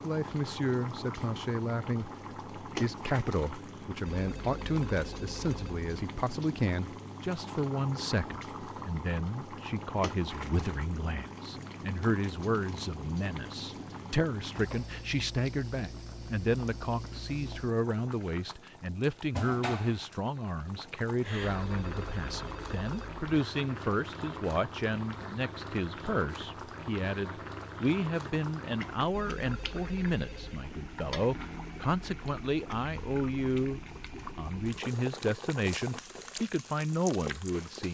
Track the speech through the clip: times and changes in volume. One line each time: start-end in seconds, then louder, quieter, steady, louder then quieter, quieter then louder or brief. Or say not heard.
0.0-37.9 steady.